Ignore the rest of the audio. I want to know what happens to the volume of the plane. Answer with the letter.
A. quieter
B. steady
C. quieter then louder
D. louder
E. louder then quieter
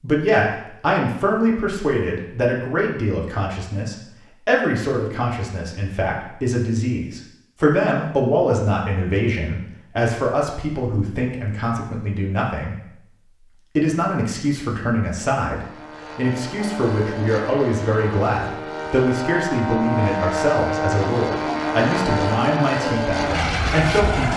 D.